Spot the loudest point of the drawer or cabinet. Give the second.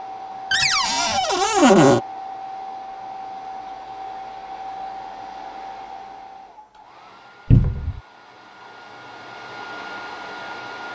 2 s.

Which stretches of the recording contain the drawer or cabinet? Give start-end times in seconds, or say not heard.
0.5-2.0, 7.5-8.0.